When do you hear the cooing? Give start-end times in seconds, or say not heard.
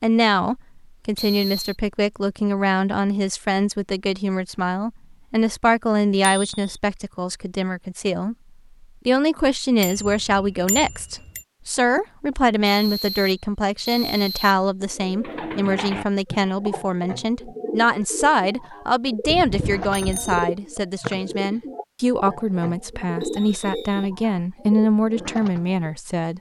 14.8-25.9.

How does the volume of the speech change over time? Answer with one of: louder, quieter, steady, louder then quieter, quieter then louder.
steady.